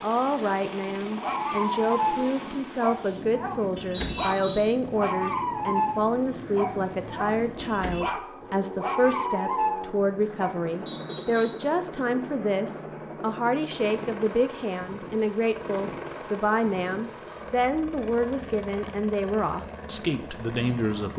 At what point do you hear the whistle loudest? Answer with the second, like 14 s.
4 s.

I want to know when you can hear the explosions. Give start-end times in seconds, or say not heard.
not heard.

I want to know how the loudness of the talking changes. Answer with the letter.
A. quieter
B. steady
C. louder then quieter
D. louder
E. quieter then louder
B.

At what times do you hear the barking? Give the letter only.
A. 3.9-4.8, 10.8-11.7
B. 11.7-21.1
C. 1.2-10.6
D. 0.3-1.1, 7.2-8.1
C.